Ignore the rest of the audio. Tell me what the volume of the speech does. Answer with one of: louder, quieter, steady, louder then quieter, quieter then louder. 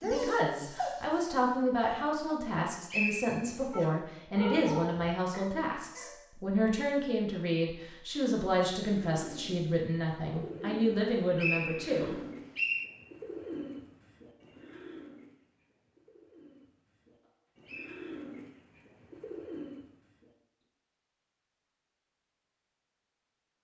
steady.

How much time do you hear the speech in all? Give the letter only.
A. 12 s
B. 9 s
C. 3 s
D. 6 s
A.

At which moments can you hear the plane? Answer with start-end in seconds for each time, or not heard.
not heard.